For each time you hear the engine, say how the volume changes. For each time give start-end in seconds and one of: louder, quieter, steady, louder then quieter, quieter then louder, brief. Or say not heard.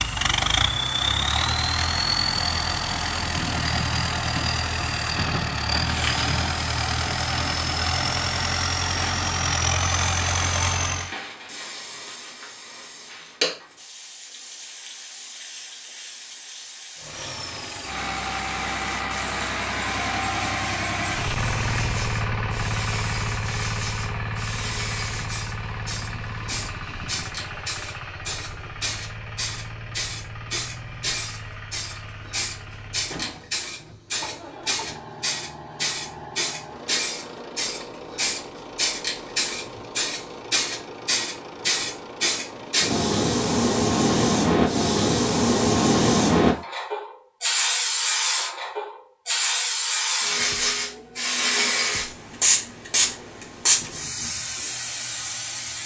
0.0-11.2 steady
16.9-43.0 quieter.